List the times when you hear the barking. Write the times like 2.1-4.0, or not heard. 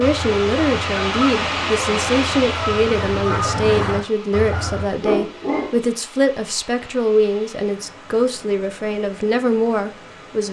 5.0-5.8.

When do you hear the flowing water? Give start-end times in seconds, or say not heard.
0.0-10.4.